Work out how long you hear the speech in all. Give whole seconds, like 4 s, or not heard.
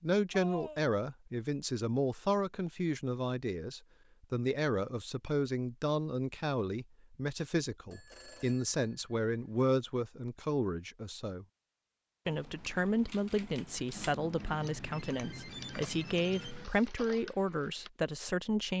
18 s.